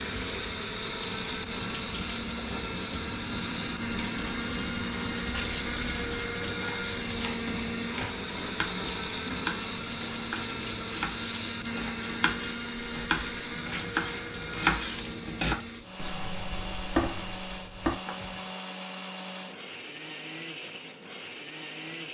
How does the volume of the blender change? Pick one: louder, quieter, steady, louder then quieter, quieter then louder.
quieter.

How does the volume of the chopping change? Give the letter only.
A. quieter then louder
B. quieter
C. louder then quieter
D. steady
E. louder
E.